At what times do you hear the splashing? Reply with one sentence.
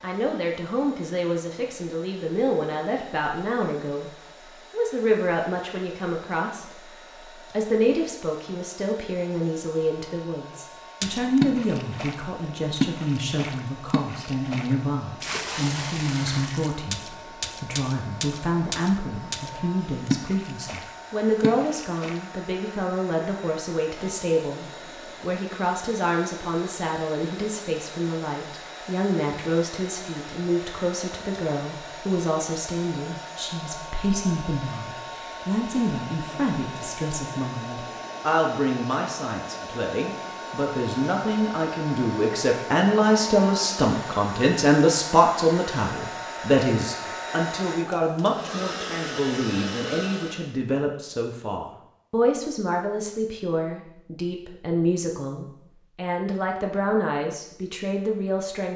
You can hear the splashing from 11.0 to 22.2 s.